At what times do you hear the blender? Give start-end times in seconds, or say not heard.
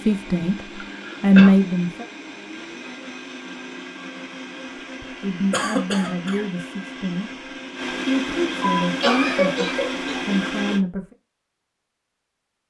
0.0-10.8.